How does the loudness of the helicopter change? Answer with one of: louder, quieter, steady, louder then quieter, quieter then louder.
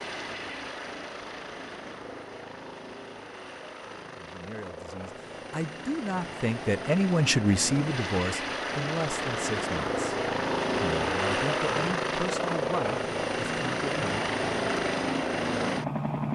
louder.